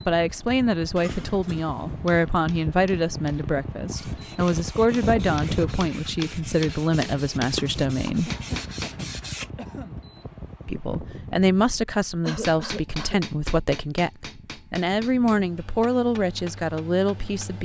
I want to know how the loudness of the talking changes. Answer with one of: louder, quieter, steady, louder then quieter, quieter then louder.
steady.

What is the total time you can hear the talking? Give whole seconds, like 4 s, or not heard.
15 s.